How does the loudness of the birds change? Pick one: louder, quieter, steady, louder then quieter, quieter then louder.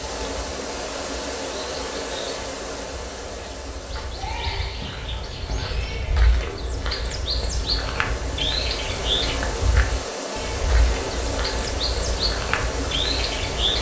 louder.